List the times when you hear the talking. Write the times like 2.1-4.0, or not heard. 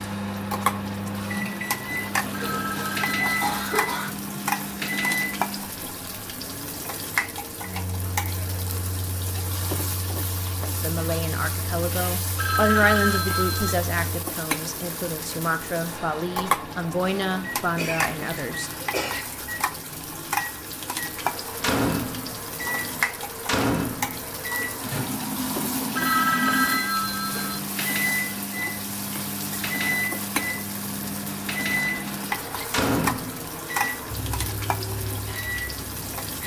10.8-18.7.